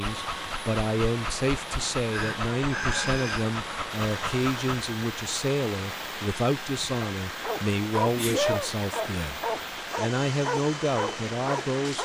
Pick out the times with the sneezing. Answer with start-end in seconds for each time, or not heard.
2.1-3.5, 8.0-8.7.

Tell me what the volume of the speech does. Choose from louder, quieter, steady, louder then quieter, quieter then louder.
steady.